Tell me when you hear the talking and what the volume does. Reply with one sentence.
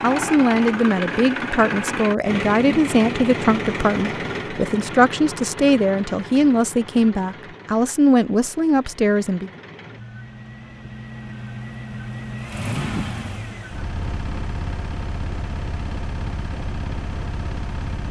The talking can be heard from 0.0 to 9.5 s, at a steady volume.